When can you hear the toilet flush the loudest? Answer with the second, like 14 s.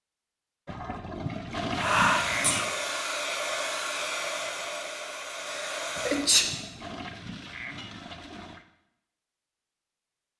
2 s.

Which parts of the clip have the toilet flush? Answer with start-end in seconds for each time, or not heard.
0.7-2.7, 6.0-8.7.